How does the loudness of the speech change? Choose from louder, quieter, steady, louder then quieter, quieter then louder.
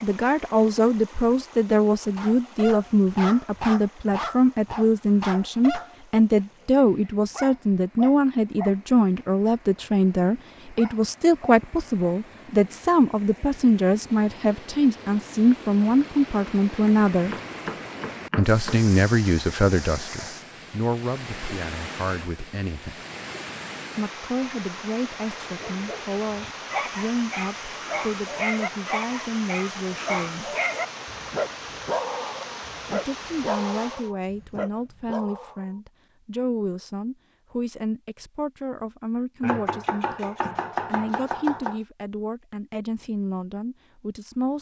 quieter.